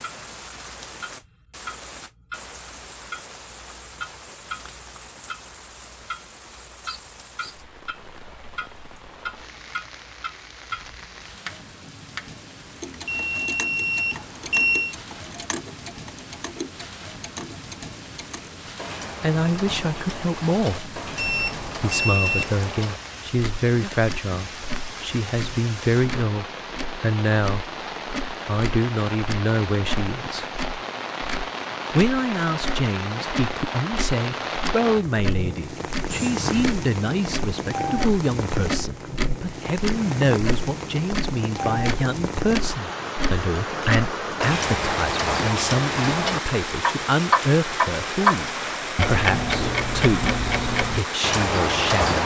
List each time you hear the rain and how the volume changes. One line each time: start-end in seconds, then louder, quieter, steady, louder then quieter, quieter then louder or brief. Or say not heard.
0.0-52.2 louder.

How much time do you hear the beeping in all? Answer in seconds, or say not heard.
4 s.